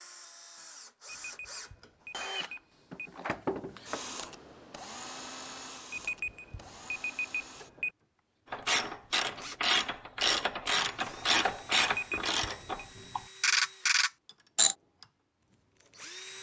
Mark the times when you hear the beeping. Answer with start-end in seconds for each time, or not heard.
1.1-3.1, 5.9-7.9, 11.8-12.8.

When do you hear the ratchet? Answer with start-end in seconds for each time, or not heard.
8.5-14.8.